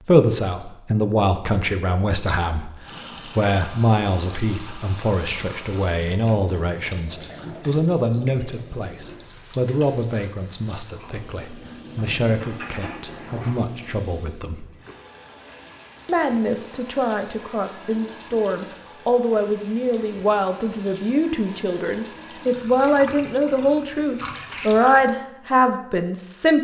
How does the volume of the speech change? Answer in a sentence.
The loudness of the speech goes down, then up.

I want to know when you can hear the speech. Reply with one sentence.
You can hear the speech from 0.1 to 14.7 s and from 16.1 to 26.6 s.